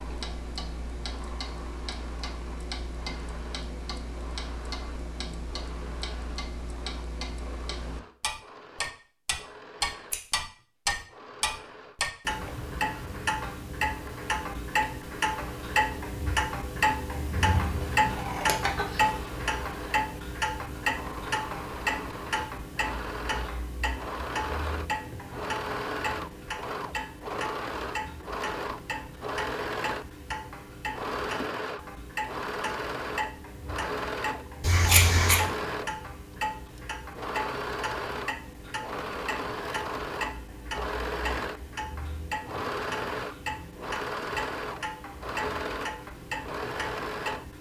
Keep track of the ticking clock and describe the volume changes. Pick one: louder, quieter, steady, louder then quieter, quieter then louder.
louder then quieter.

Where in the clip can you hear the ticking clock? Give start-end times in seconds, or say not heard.
0.0-47.5.